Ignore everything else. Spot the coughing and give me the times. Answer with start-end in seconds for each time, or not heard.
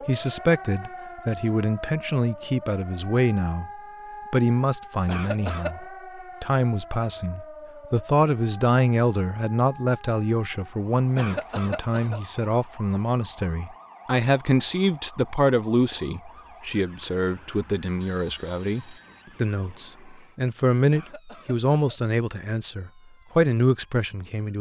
5.0-5.8, 11.2-12.2, 20.9-22.0.